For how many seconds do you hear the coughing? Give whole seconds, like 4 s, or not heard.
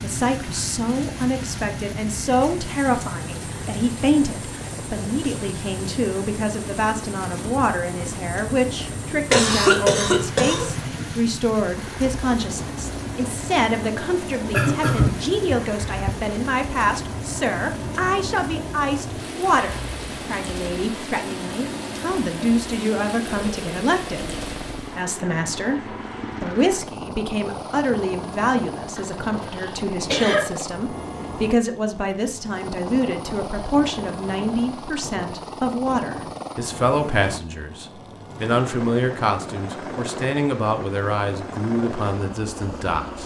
5 s.